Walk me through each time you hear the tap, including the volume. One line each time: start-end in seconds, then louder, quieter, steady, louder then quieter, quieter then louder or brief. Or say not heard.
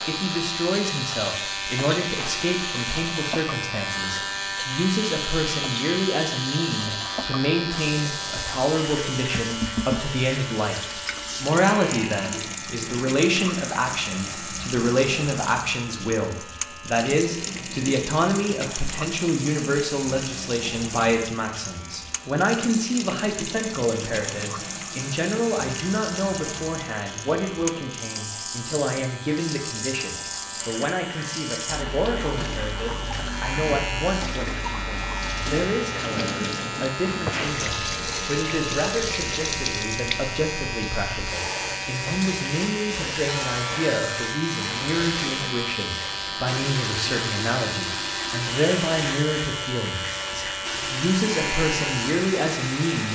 0.0-53.0 steady.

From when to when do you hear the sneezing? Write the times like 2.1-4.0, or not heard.
not heard.